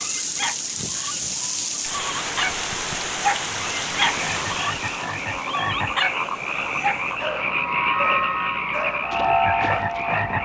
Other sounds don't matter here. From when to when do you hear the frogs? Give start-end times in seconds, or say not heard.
4.0-10.4.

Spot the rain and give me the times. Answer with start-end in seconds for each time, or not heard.
0.0-7.2.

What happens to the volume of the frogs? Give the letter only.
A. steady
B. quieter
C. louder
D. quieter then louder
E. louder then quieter
C.